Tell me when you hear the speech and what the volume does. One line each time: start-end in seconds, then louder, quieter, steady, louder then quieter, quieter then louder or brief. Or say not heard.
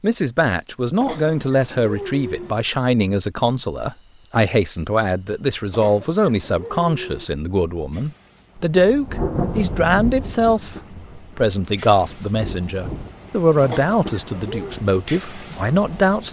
0.0-16.2 steady.